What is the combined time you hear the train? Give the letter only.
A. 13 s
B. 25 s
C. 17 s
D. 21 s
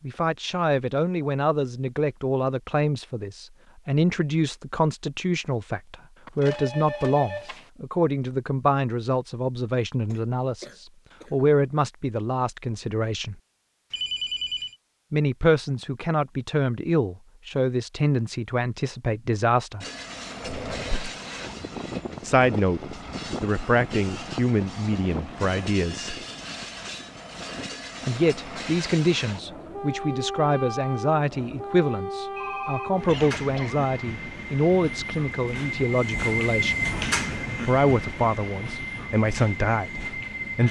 D.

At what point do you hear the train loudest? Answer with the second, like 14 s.
37 s.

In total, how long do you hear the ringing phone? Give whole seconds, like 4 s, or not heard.
3 s.